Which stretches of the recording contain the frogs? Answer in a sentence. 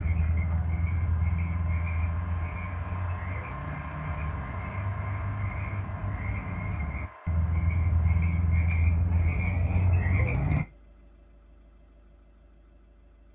You can hear the frogs from 0.0 to 10.7 s.